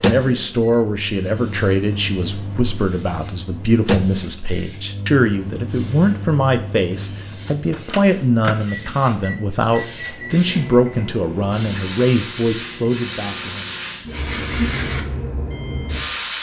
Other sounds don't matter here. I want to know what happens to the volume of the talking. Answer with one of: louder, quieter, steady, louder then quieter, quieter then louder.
steady.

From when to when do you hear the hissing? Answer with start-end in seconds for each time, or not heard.
0.0-16.3.